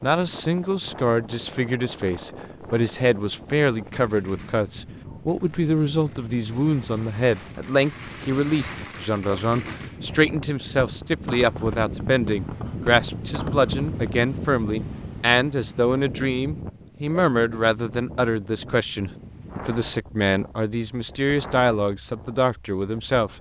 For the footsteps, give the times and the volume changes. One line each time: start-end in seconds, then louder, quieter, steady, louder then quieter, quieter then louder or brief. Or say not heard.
not heard.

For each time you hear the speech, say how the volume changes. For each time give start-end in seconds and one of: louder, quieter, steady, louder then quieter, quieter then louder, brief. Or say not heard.
0.0-23.3 steady.